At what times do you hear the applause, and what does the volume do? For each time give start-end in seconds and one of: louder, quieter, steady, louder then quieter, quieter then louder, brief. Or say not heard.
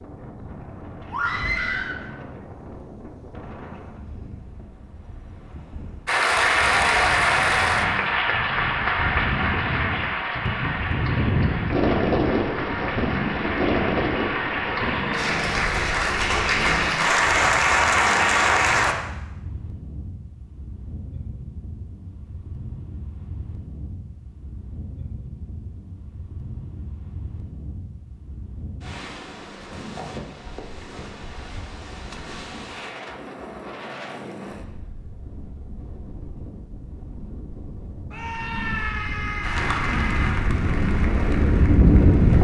6.0-18.9 quieter then louder
39.4-42.3 brief.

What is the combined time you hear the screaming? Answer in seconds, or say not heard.
4 s.